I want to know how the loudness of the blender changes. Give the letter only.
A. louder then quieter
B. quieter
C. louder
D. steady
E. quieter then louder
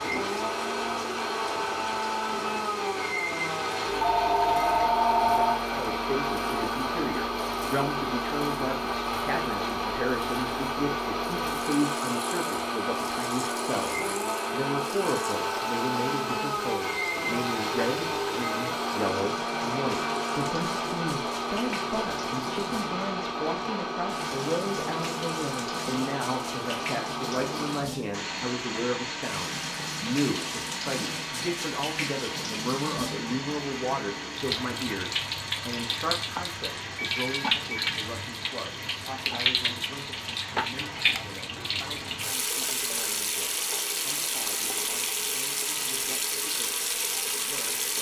B.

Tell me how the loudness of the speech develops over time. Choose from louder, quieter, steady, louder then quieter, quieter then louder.
quieter.